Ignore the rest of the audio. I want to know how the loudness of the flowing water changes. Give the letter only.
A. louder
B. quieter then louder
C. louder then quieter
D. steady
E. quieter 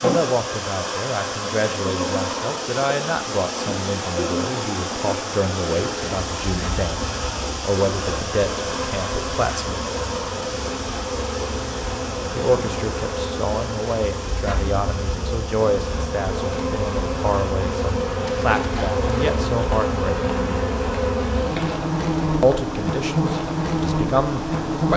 E.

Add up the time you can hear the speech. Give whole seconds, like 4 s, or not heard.
20 s.